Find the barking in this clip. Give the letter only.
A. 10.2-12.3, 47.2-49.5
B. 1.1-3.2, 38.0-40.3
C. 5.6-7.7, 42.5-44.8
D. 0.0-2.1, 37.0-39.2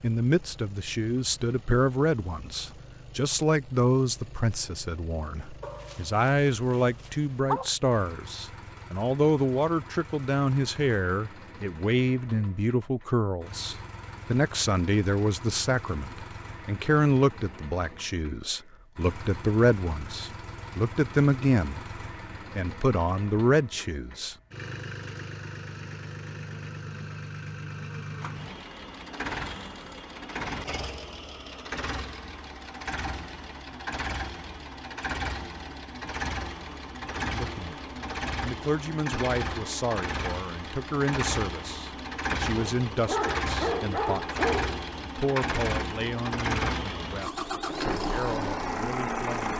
C.